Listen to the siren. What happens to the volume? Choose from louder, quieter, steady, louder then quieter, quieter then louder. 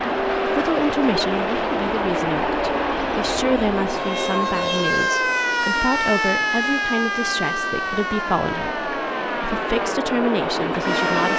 louder then quieter.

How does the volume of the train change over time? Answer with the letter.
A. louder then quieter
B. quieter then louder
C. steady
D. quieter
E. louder
B.